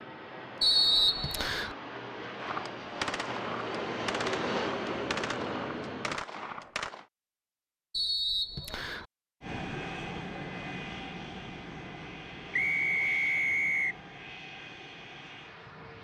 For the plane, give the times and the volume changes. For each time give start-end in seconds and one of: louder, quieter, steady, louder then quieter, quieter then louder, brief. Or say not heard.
0.0-6.2 louder
9.4-15.9 quieter.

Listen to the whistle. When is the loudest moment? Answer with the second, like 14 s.
1 s.